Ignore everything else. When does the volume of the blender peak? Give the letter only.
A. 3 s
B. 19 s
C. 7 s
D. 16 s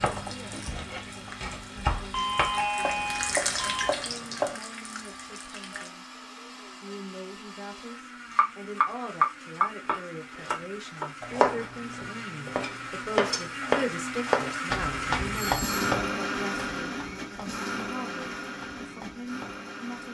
D.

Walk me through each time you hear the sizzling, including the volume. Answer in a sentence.
The sizzling can be heard from 0.0 to 5.9 s, getting louder then quieter.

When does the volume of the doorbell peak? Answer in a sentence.
The volume of the doorbell peaks at 3 seconds.